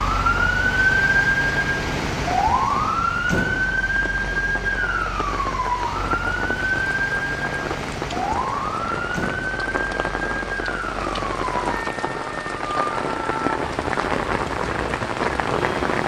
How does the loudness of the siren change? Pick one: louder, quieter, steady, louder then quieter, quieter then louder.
quieter.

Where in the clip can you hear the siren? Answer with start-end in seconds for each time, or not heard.
0.0-16.0.